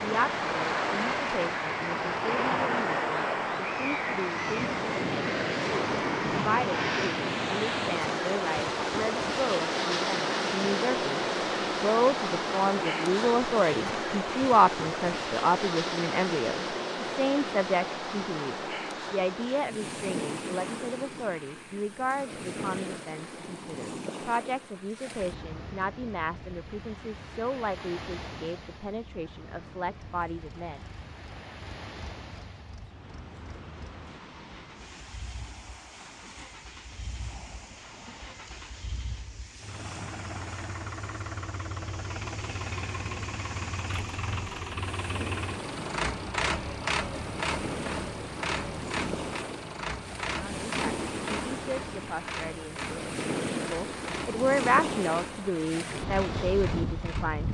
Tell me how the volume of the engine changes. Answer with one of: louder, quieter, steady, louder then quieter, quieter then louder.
louder then quieter.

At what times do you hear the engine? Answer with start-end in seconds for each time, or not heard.
29.9-57.4.